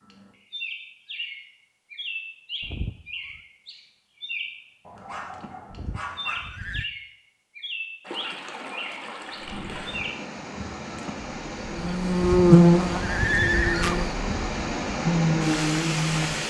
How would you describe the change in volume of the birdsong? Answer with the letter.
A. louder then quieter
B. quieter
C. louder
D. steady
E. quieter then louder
D.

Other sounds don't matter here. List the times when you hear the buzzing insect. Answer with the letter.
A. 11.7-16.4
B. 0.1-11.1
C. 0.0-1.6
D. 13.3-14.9
A.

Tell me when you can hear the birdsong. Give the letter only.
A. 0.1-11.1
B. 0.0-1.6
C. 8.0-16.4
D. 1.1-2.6
A.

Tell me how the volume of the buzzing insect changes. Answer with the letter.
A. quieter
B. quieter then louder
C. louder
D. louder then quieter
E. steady
B.